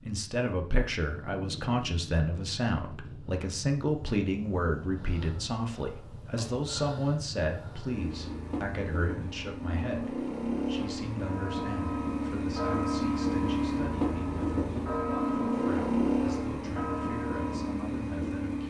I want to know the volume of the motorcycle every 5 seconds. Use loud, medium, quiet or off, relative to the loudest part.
quiet, medium, loud, loud.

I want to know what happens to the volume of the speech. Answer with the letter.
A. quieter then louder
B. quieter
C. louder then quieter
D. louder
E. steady
B.